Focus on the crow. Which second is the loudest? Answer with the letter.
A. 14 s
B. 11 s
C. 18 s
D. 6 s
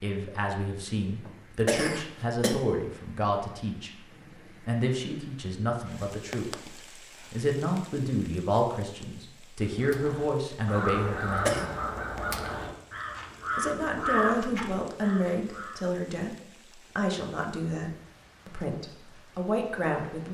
A.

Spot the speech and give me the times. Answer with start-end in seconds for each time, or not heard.
0.0-3.9, 4.6-6.5, 7.3-11.7, 13.6-16.4, 16.9-20.2.